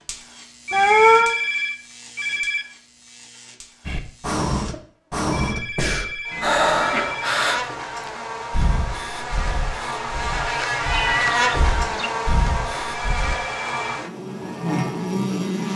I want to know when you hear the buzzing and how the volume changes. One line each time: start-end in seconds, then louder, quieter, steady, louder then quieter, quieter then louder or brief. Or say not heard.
0.0-15.7 louder.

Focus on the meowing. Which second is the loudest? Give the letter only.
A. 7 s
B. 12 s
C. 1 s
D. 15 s
C.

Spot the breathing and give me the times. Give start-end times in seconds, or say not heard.
3.9-13.3.